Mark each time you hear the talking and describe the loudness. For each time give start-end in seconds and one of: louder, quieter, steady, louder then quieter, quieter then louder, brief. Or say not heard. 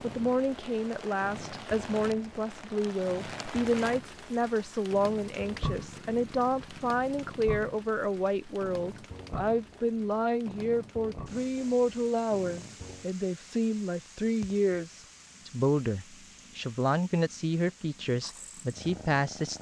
0.0-19.5 steady.